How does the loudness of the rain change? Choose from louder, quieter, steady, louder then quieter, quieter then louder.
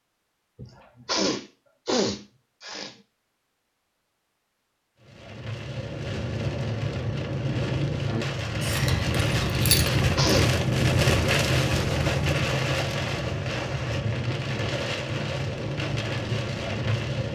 louder then quieter.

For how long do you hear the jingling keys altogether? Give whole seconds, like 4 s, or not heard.
2 s.